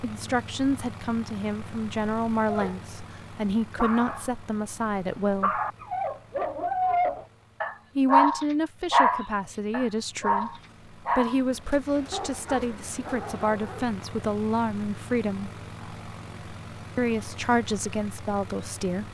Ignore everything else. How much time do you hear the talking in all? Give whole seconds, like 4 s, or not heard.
15 s.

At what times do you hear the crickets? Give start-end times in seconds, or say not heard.
not heard.